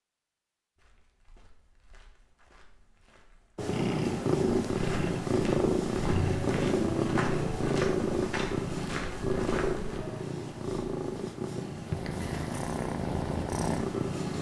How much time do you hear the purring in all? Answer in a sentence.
You can hear the purring for 11 seconds altogether.